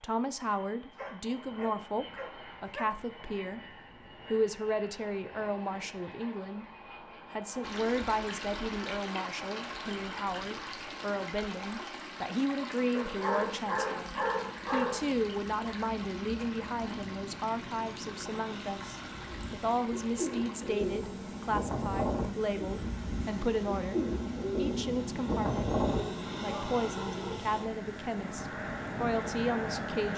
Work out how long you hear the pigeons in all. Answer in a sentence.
You can hear the pigeons for 7 seconds altogether.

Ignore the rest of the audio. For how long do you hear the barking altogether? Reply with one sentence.
You can hear the barking for 6 seconds altogether.